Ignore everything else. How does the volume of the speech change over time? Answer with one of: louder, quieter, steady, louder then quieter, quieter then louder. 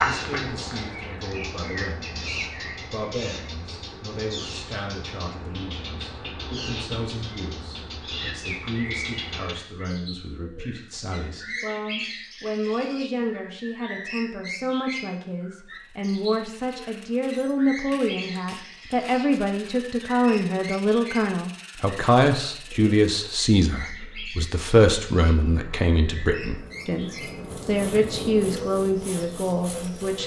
louder.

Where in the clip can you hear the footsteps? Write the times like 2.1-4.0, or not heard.
not heard.